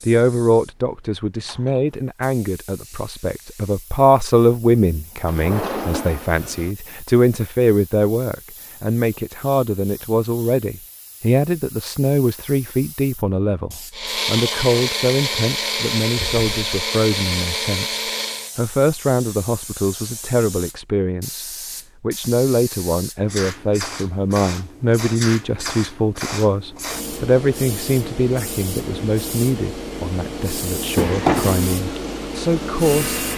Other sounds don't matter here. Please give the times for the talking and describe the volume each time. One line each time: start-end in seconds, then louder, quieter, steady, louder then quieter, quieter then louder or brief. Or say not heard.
0.0-33.2 steady.